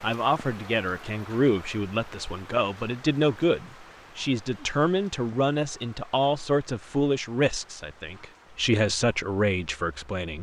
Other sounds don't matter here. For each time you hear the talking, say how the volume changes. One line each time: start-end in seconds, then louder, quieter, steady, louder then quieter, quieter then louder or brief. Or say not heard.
0.0-10.3 steady.